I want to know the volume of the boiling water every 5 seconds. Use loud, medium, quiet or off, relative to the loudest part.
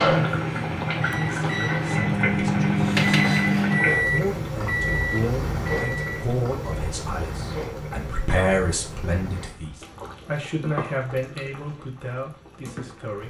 loud, medium, quiet.